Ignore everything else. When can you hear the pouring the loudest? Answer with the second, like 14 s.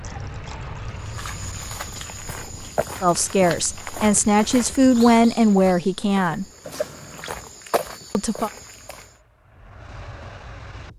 7 s.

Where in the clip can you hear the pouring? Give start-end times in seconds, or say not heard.
0.0-2.8, 6.6-7.3.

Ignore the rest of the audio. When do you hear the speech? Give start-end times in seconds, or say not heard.
3.0-6.5, 8.1-8.5.